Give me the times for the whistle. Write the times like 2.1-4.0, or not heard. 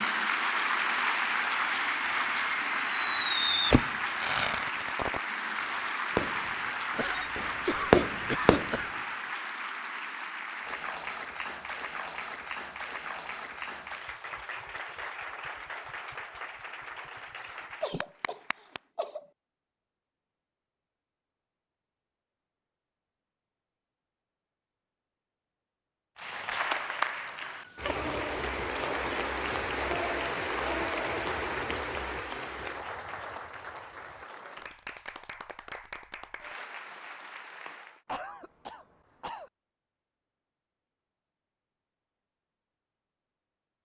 not heard.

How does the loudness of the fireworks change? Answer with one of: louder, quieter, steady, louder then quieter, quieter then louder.
quieter then louder.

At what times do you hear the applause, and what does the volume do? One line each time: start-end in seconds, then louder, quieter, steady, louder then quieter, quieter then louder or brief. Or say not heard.
0.0-18.8 quieter
26.1-38.0 quieter.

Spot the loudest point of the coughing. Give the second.
8 s.